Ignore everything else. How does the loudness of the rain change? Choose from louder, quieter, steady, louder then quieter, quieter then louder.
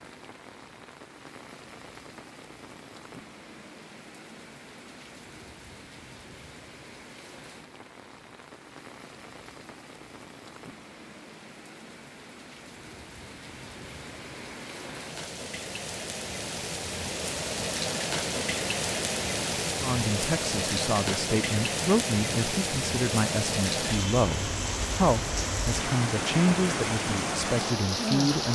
louder.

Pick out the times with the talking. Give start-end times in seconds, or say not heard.
19.8-28.4.